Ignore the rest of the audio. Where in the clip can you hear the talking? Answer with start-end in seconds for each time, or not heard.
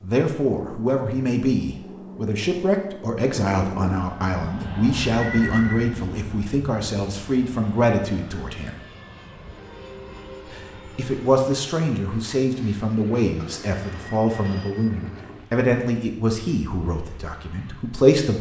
0.0-8.8, 10.5-18.3.